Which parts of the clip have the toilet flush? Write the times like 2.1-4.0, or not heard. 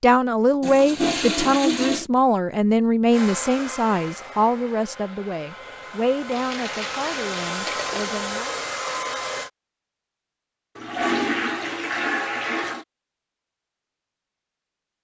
0.6-2.0, 6.3-8.2, 10.8-12.8.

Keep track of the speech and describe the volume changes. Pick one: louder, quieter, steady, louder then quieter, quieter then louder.
quieter.